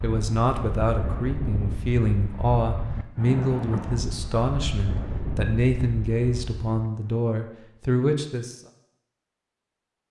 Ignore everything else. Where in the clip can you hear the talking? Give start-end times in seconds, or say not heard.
0.0-8.6.